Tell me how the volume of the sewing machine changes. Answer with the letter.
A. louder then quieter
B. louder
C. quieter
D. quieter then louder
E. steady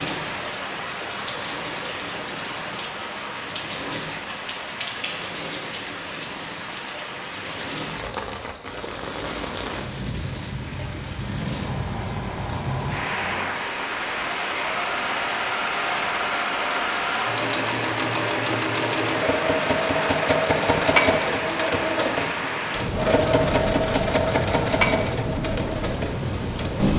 B.